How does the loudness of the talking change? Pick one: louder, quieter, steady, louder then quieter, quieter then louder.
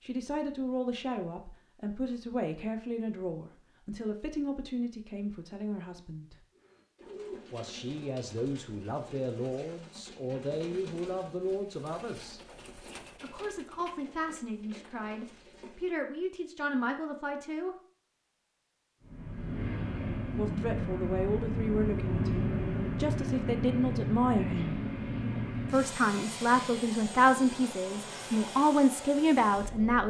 louder.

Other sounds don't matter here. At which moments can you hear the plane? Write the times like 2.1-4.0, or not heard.
19.0-30.0.